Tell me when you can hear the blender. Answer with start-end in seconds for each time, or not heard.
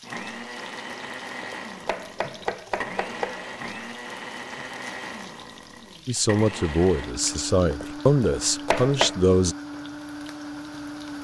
0.0-11.2.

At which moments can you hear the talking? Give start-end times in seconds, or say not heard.
6.0-9.6.